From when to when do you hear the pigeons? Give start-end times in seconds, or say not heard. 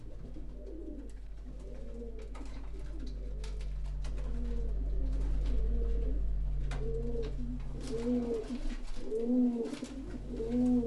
0.0-10.8.